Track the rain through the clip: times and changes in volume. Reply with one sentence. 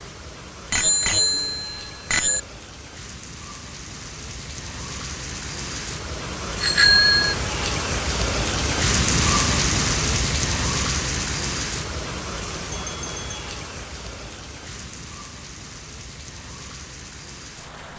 You can hear the rain from 0.0 to 17.9 s, getting louder then quieter.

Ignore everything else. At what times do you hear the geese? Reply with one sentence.
You can't hear the geese here.